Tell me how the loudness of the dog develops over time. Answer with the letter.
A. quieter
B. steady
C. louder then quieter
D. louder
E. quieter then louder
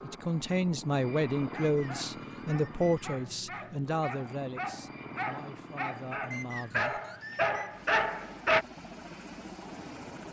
D.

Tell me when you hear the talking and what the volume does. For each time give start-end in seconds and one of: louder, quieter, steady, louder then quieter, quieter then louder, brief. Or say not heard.
0.0-7.0 quieter.